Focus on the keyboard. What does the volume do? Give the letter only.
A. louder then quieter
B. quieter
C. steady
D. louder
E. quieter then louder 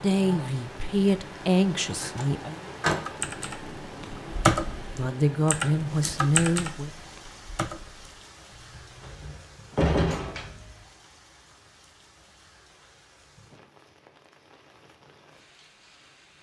A.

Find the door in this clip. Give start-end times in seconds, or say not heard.
1.9-3.0, 9.0-10.8.